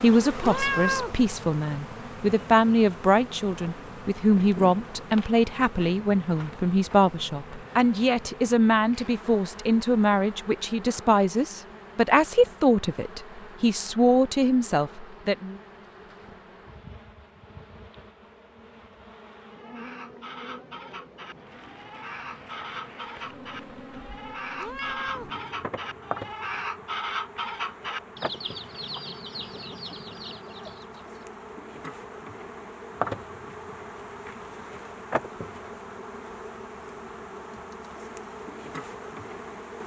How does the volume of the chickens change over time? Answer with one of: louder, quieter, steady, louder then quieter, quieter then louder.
louder then quieter.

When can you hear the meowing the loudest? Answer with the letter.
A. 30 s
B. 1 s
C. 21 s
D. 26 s
B.